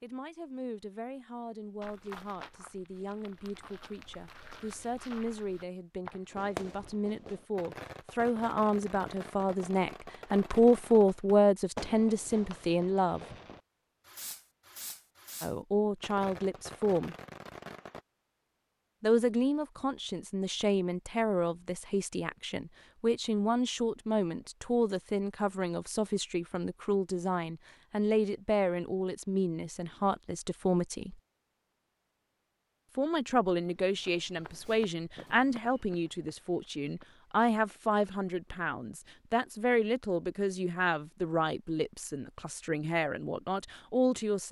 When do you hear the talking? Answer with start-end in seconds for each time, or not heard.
0.0-13.2, 15.4-17.1, 19.0-31.1, 33.0-44.4.